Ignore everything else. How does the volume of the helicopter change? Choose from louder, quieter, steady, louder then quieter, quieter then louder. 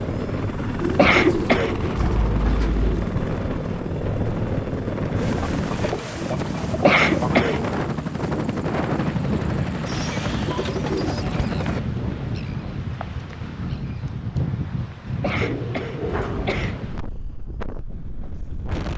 steady.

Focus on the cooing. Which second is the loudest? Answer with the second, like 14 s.
1 s.